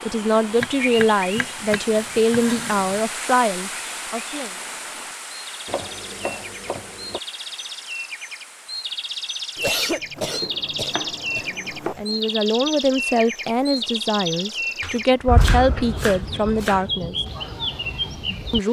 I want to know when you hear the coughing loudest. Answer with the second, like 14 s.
10 s.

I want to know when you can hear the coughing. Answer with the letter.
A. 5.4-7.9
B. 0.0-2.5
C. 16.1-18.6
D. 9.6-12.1
D.